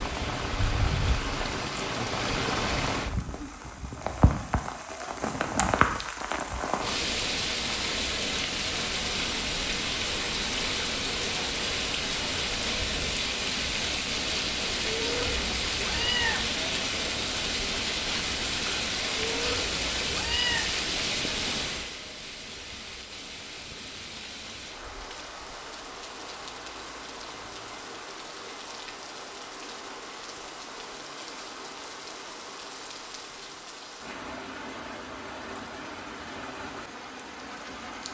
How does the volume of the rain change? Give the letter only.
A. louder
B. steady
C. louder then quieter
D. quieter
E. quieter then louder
D.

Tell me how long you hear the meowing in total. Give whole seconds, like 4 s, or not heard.
3 s.